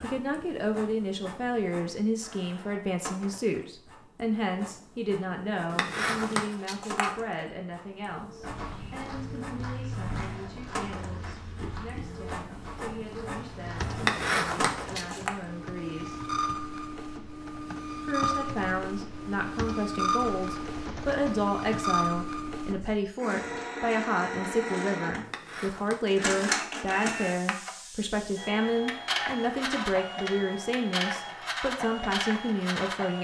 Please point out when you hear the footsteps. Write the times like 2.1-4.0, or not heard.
8.4-14.1.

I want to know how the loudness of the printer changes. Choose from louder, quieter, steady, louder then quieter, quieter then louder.
louder.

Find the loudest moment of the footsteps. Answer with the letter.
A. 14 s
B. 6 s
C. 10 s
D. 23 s
C.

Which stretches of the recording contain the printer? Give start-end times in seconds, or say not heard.
0.0-33.1.